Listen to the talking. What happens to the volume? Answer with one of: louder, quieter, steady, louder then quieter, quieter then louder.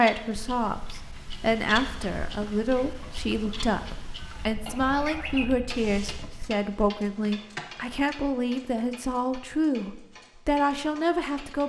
steady.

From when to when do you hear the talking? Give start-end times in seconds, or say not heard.
0.0-11.6.